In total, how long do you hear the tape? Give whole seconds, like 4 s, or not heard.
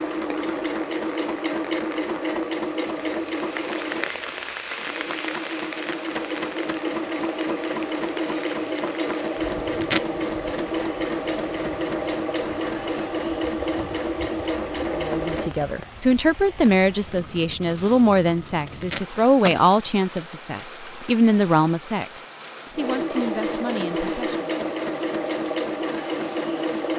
2 s.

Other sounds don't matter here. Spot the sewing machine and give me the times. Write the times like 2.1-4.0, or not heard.
0.0-15.6, 22.7-26.9.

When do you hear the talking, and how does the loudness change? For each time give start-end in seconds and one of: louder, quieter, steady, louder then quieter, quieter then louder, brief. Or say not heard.
14.9-24.4 quieter.